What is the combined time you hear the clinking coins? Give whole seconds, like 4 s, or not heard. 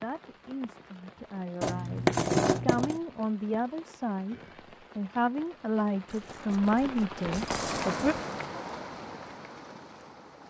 3 s.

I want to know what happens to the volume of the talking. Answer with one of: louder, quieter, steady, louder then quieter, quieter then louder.
louder.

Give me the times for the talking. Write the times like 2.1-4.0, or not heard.
0.0-4.3, 5.0-8.2.